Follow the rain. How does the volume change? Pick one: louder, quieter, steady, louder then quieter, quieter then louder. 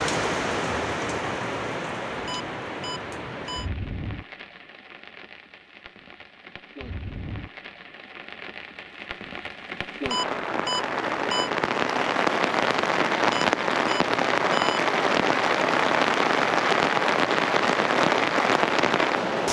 quieter then louder.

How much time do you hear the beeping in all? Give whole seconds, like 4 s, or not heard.
4 s.